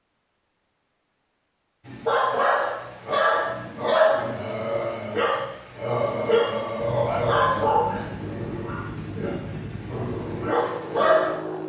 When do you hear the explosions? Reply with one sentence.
You can't hear the explosions here.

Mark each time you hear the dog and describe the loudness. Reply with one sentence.
The dog can be heard from 1.9 to 11.3 s, getting quieter.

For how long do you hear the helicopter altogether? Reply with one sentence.
The helicopter can be heard for 5 seconds in total.